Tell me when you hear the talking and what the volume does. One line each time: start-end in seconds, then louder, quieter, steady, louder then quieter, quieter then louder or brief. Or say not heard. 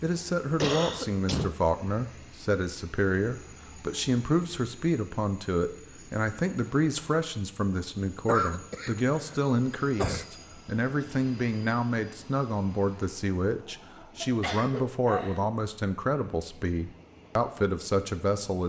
0.0-18.6 steady.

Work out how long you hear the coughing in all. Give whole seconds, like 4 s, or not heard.
5 s.